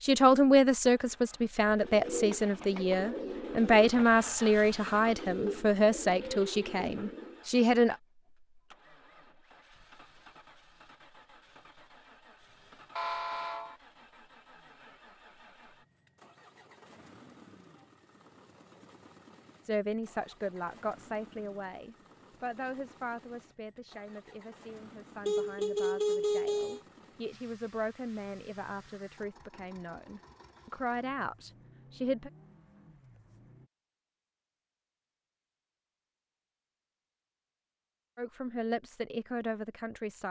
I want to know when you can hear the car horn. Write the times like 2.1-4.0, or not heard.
12.9-13.8, 25.2-26.8.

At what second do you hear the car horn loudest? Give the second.
26 s.